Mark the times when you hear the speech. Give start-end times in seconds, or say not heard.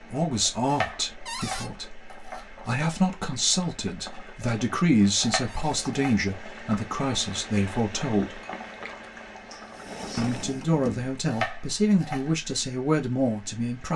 0.0-8.4, 10.2-13.9.